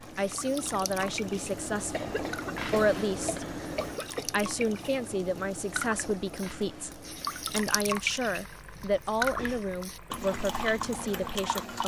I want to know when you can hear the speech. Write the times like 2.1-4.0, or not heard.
0.1-3.5, 4.2-11.8.